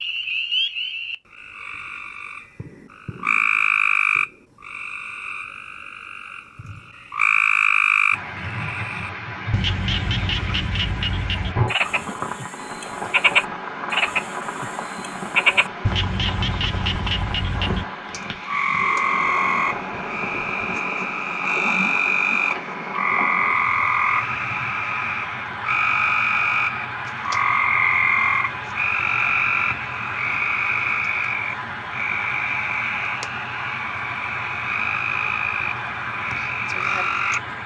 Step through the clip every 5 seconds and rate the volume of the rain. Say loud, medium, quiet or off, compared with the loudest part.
off, loud, loud, loud, loud, loud, loud, loud.